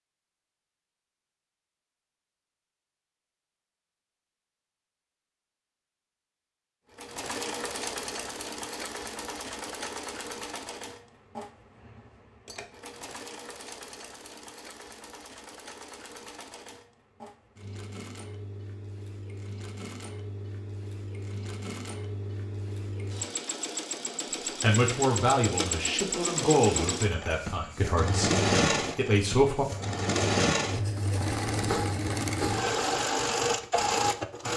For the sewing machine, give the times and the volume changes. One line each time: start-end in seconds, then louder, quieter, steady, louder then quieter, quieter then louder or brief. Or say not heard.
6.9-34.5 quieter then louder.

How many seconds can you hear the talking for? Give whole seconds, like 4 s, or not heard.
5 s.